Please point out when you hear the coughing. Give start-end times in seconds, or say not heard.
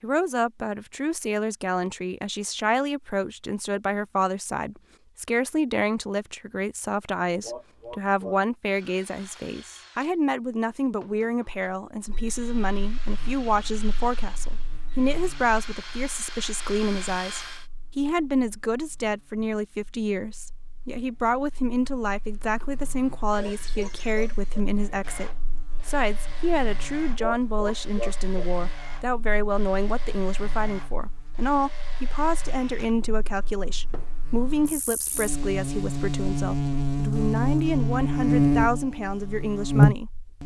7.4-8.4, 23.4-25.4, 27.1-28.5.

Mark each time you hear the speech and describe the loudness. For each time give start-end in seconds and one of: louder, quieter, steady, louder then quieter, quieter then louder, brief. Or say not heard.
0.0-40.4 steady.